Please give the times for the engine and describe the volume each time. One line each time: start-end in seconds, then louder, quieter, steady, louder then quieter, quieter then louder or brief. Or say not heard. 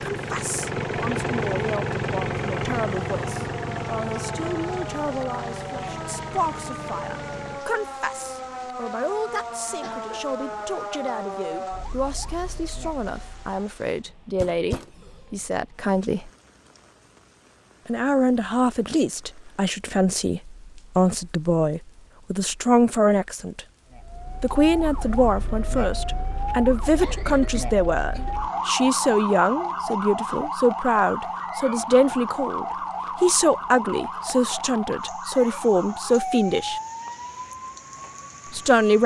0.0-7.7 quieter.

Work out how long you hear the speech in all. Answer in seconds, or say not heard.
35 s.